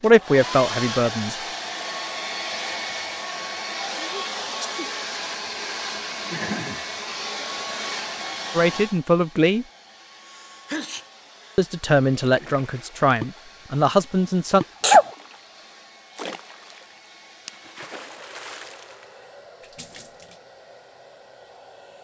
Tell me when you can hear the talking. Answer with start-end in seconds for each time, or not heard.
0.0-1.4, 8.6-9.7, 11.6-14.7.